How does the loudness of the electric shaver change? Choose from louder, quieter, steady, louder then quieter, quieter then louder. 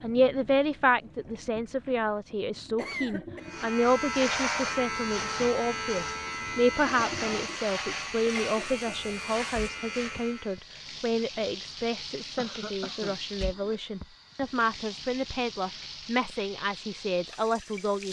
quieter.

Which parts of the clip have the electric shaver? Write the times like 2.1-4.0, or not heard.
3.4-10.6.